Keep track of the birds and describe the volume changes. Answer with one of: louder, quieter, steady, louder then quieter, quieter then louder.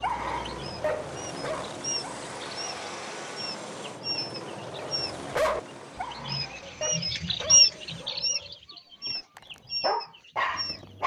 louder then quieter.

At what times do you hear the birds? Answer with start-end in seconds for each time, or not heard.
0.0-5.2, 6.1-10.8.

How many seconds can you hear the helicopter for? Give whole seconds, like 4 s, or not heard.
8 s.